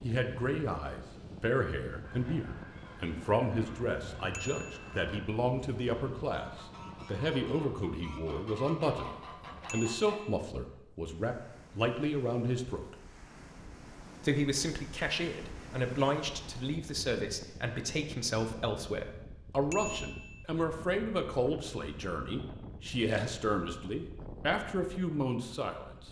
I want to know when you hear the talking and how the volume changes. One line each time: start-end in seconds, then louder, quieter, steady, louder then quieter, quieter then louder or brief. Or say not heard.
0.0-12.9 steady
14.2-26.0 steady.